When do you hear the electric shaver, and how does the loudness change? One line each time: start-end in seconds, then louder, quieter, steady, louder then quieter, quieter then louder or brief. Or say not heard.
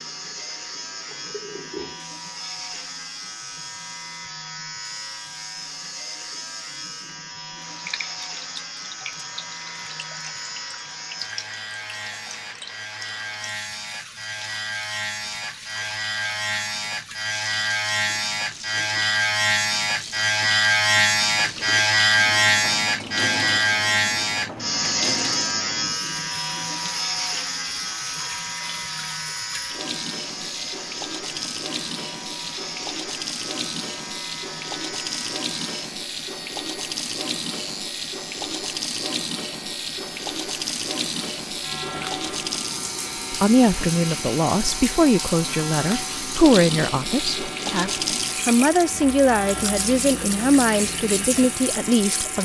0.0-52.4 louder then quieter.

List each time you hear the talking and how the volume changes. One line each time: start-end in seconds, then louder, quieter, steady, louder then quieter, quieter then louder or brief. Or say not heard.
43.3-52.4 steady.